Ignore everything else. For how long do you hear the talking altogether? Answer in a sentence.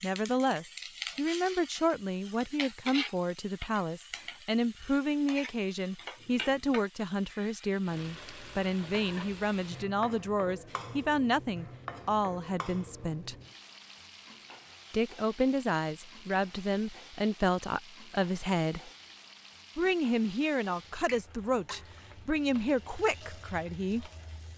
You can hear the talking for 22 seconds altogether.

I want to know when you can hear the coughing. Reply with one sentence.
The coughing can't be heard in this clip.